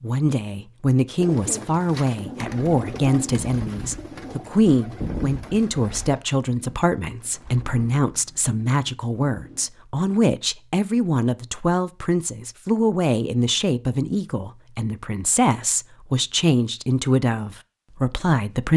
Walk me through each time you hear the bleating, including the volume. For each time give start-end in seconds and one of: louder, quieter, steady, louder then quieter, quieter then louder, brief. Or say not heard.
not heard.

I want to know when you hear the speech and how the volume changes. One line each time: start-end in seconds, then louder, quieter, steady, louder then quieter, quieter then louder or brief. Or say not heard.
0.0-18.7 steady.